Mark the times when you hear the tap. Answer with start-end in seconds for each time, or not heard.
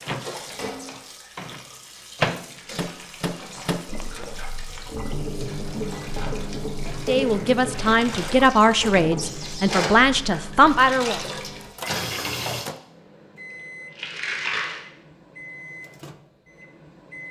0.0-12.7.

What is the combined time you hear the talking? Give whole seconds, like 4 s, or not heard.
4 s.